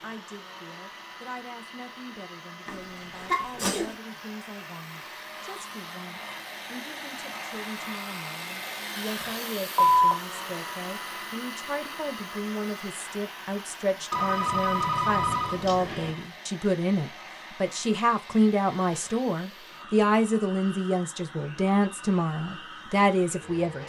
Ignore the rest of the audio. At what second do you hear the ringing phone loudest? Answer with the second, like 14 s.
10 s.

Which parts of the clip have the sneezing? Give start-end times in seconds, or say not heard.
2.6-4.0.